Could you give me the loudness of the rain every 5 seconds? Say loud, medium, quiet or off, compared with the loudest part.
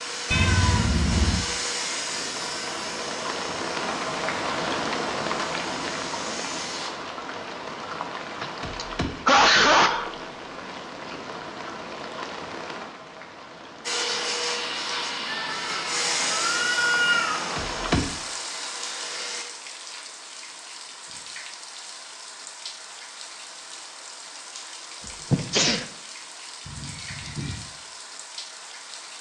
loud, loud, medium, loud, medium, medium.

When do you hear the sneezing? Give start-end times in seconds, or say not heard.
8.4-10.1, 25.1-25.9.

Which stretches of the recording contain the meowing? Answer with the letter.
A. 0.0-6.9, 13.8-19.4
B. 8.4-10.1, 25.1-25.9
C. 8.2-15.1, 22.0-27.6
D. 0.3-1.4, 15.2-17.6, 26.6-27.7
D.